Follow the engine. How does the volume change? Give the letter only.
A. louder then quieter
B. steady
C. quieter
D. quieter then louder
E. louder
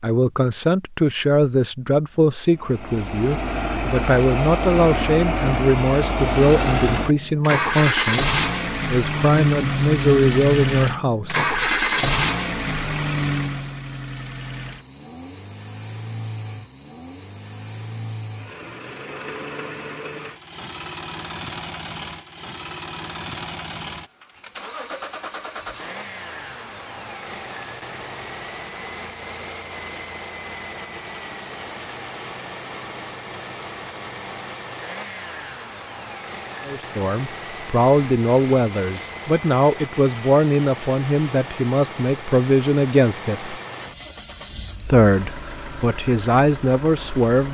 C.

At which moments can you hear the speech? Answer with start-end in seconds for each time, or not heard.
0.0-11.5, 36.6-43.5, 44.8-47.4.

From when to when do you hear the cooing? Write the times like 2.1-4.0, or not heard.
not heard.